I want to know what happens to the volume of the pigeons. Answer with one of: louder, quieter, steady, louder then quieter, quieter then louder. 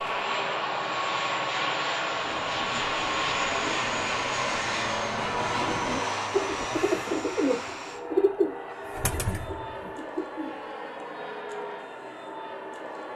louder then quieter.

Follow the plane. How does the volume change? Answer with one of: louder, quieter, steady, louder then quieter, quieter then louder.
quieter.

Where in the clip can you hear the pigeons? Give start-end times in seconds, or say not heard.
2.0-10.6.